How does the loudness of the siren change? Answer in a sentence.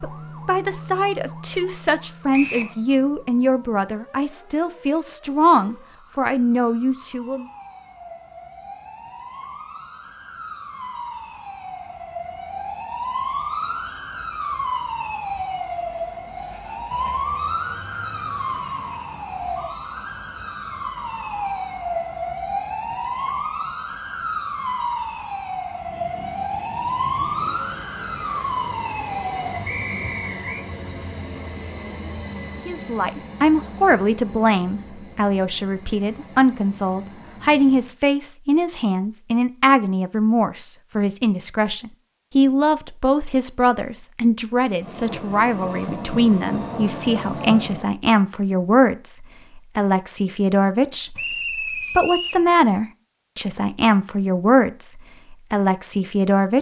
The volume of the siren goes up.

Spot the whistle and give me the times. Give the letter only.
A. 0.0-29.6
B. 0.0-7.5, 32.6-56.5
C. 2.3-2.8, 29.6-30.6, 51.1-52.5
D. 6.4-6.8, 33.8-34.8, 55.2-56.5
C.